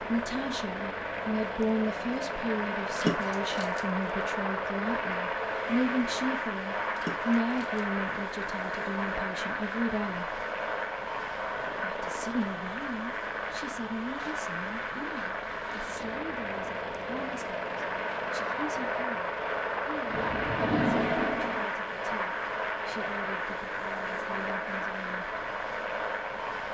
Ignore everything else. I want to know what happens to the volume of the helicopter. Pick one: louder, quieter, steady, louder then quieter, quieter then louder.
steady.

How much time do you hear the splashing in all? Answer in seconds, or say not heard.
5 s.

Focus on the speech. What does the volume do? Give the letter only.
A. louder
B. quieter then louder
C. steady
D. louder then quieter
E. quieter
E.